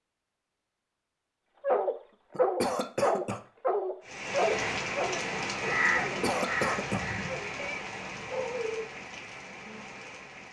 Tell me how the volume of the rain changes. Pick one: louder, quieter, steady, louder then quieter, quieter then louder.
quieter.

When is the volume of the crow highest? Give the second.
6 s.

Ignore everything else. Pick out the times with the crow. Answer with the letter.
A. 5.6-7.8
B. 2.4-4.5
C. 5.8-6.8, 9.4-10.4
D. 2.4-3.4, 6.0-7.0
A.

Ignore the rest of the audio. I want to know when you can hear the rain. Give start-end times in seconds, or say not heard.
4.0-10.4.